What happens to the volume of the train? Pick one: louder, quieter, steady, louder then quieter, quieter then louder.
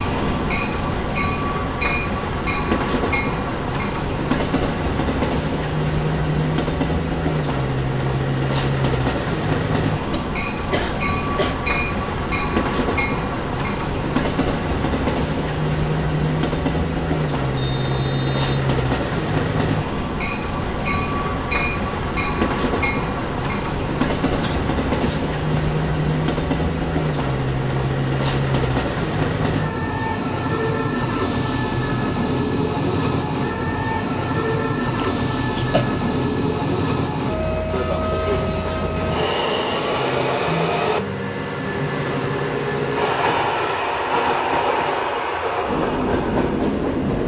steady.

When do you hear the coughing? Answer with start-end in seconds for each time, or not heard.
10.1-11.6, 24.4-25.9, 35.0-35.9.